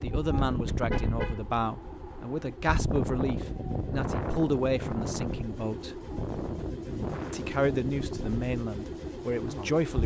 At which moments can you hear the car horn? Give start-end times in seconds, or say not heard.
0.3-1.4.